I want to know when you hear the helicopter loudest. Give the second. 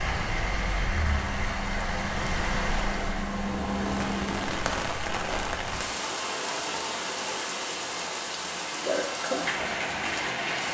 4 s.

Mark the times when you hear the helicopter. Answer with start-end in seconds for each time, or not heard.
0.0-4.8.